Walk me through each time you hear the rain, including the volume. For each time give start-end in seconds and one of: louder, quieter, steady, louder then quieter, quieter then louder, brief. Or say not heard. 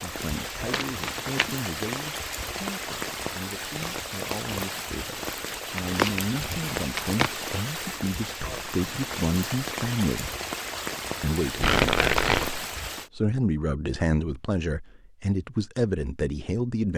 0.0-13.1 steady.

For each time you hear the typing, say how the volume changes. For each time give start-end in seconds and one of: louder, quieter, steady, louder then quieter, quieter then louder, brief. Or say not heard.
not heard.